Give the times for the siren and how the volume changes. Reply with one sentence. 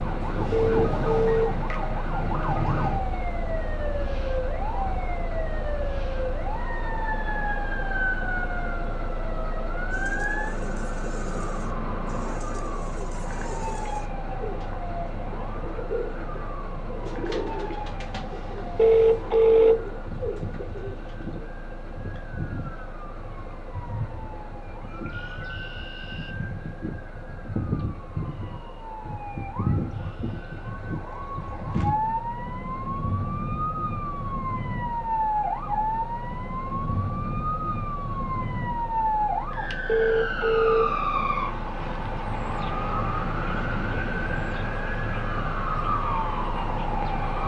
The siren can be heard from 0.0 to 47.4 s, getting quieter then louder.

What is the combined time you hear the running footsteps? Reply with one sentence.
The running footsteps can't be heard in this clip.